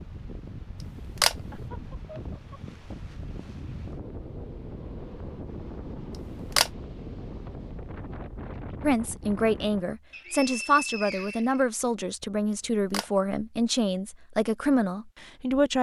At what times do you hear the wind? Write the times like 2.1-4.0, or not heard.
0.0-9.8.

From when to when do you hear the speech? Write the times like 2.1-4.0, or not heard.
8.8-15.7.